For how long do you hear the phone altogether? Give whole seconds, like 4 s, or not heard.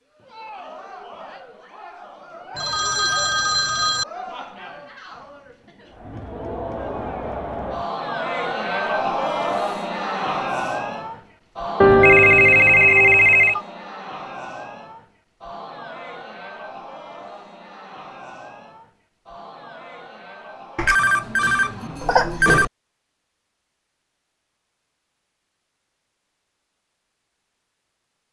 5 s.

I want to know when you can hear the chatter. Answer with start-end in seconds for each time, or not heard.
0.1-22.2.